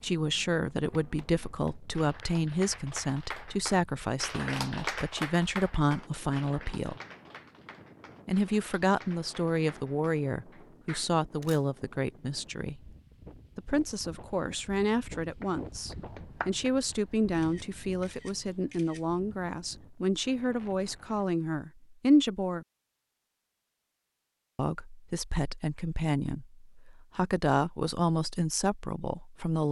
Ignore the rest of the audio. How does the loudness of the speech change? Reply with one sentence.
The loudness of the speech stays about the same.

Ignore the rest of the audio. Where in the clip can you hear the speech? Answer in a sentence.
You can hear the speech from 0.0 to 7.0 s, from 8.2 to 12.8 s, from 13.6 to 22.6 s and from 24.6 to 29.6 s.